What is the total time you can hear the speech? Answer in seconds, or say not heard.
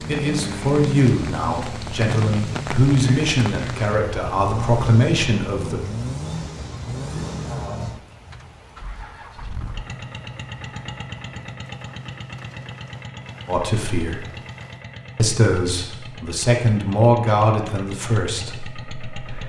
11 s.